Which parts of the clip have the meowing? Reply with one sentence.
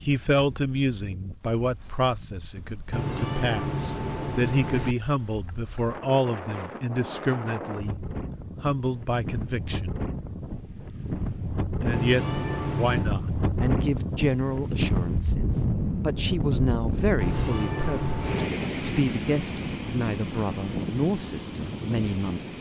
You can hear the meowing from 2.9 to 5.0 s, from 11.9 to 13.1 s and from 17.2 to 18.6 s.